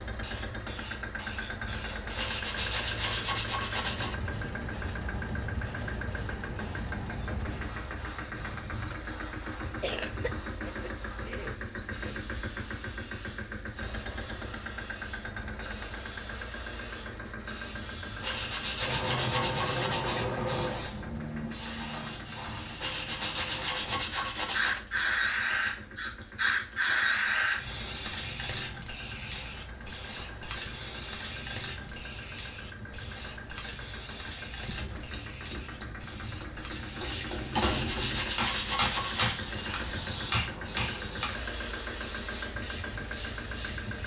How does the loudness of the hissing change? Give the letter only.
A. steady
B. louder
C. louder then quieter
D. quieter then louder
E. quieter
C.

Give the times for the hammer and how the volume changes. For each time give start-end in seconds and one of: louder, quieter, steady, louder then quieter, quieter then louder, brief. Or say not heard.
34.6-41.3 louder.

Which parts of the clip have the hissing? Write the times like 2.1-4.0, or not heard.
0.0-44.0.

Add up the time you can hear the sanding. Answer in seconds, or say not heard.
8 s.